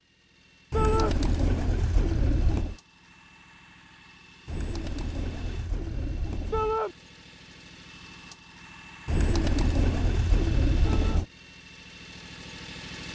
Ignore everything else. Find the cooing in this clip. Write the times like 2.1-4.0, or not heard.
0.7-2.8, 4.5-6.8, 9.1-11.2.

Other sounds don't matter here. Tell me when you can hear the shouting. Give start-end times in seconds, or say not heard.
0.7-1.1, 6.5-7.0, 10.8-11.2.